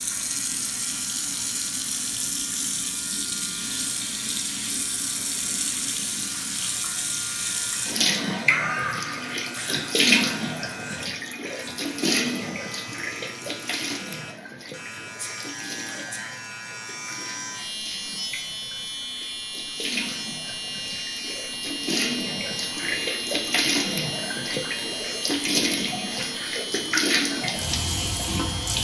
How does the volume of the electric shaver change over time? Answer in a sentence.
The loudness of the electric shaver goes up.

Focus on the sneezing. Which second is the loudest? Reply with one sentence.
The volume of the sneezing peaks at 9 seconds.